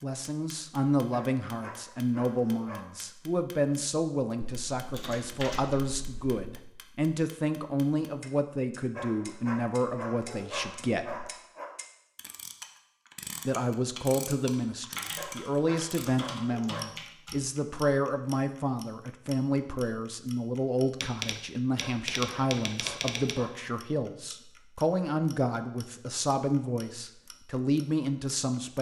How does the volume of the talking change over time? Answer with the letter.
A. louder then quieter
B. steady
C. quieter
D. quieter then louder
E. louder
B.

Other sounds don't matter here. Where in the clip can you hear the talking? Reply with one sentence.
You can hear the talking from 0.0 to 11.3 s and from 13.4 to 28.7 s.